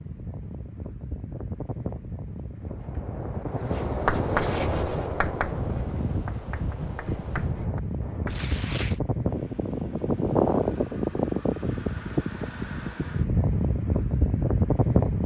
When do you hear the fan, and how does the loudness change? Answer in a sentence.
The fan can be heard from 0.0 to 15.2 s, getting louder.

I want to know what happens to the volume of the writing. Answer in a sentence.
The volume of the writing goes up, then down.